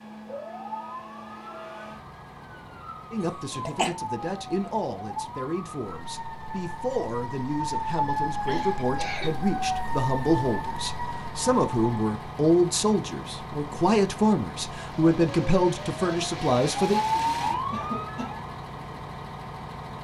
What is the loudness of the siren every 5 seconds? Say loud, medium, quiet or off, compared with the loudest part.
medium, loud, loud, loud.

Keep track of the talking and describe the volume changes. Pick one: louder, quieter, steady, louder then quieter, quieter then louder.
louder.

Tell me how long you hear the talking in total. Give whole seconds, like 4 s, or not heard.
14 s.